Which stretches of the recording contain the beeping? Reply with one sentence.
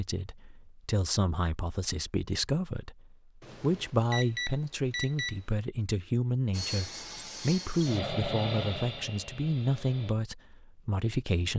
You can hear the beeping from 3.4 to 5.4 s.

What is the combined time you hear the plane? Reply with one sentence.
You can hear the plane for 4 seconds altogether.